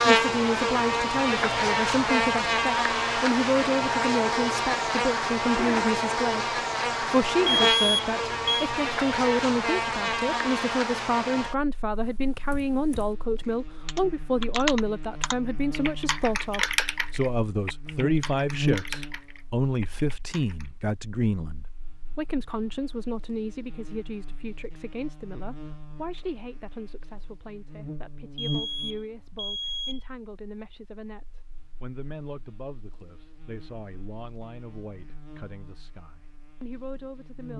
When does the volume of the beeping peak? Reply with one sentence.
The volume of the beeping peaks at 8 seconds.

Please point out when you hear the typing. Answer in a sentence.
You can hear the typing from 12.0 to 20.7 s.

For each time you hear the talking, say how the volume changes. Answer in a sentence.
You can hear the talking from 0.1 to 37.5 s, getting quieter.